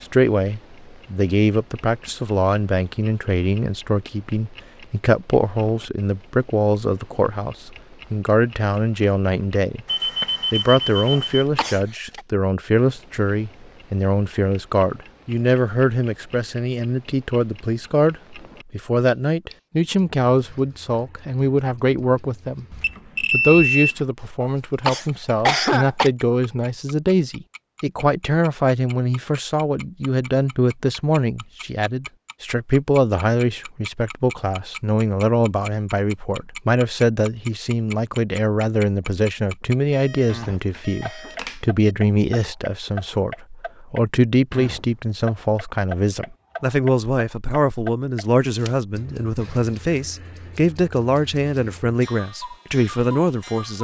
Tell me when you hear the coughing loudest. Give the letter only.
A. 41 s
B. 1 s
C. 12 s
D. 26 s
D.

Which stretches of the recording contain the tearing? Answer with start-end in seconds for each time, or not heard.
not heard.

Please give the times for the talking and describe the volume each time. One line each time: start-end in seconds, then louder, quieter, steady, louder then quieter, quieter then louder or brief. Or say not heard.
0.0-9.8 steady
10.5-53.7 steady.